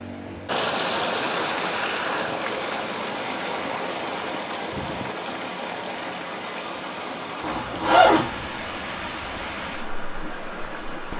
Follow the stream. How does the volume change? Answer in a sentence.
The volume of the stream goes down.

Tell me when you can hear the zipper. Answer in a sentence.
You can hear the zipper from 7.4 to 8.4 s.